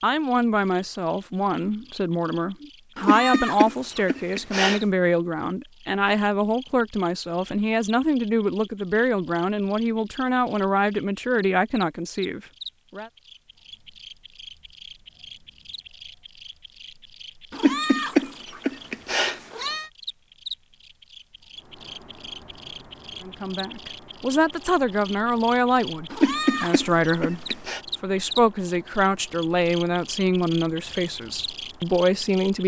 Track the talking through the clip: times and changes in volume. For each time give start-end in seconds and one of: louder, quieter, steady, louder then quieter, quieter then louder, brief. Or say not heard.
0.0-13.1 steady
23.2-32.6 steady.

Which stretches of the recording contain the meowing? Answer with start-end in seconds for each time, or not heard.
3.0-4.8, 17.5-19.9, 26.1-27.8.